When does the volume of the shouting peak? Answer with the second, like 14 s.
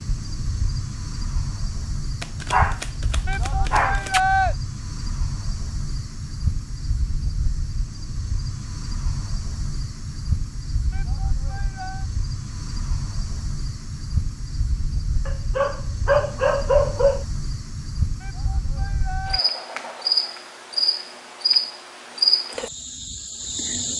4 s.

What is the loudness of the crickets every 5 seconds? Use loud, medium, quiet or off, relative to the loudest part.
medium, medium, medium, medium, loud.